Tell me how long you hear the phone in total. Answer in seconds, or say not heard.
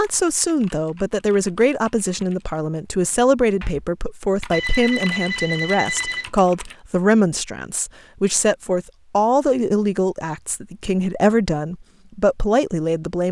2 s.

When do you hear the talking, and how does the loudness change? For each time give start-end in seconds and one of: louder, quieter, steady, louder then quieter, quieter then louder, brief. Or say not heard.
0.0-13.2 steady.